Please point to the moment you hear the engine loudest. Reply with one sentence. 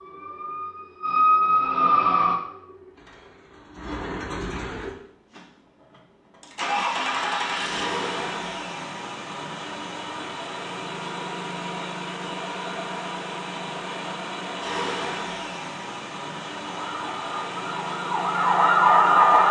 The loudest moment of the engine is at 7 seconds.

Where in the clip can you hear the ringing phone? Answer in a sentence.
The ringing phone can't be heard in this clip.